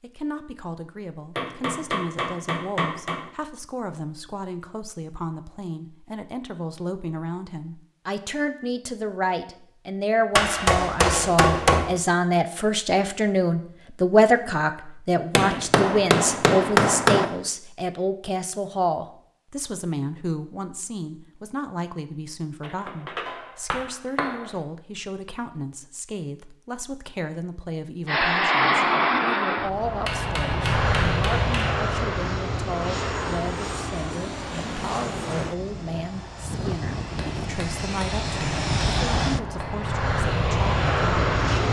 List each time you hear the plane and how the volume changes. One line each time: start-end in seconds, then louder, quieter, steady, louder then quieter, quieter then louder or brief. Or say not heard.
28.1-41.6 quieter then louder.